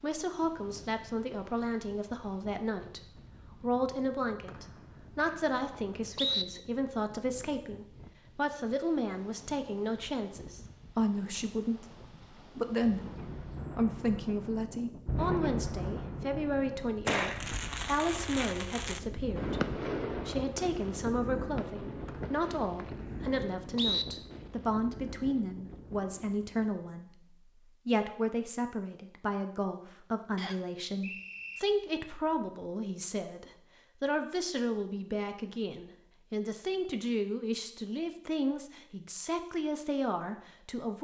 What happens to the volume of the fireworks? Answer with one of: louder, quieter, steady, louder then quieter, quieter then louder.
louder then quieter.